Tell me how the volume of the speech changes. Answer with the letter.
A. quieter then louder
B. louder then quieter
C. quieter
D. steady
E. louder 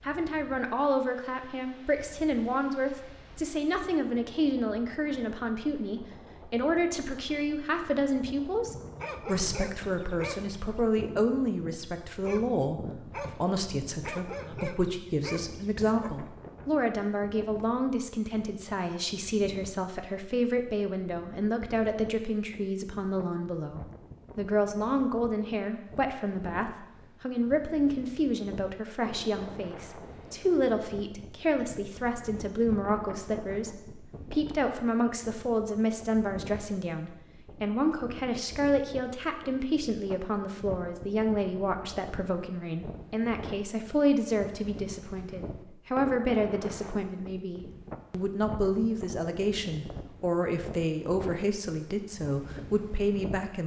D.